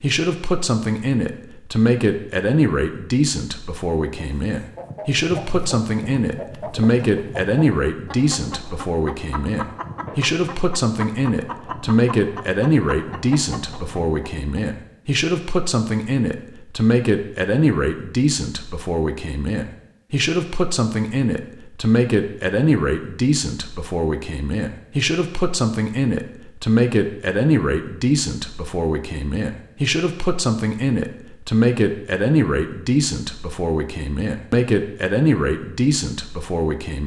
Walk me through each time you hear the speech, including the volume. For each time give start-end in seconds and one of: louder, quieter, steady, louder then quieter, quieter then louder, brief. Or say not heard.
0.0-37.0 steady.